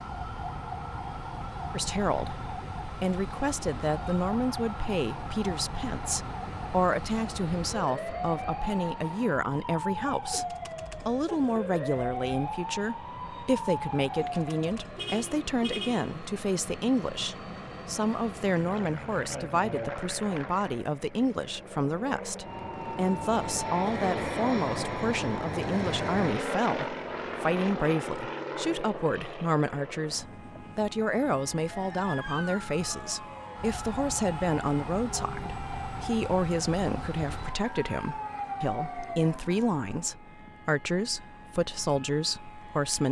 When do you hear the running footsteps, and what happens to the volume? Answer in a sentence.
The running footsteps can't be heard in this clip.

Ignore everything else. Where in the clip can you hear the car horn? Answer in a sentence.
You can hear the car horn from 14.9 to 16.2 s.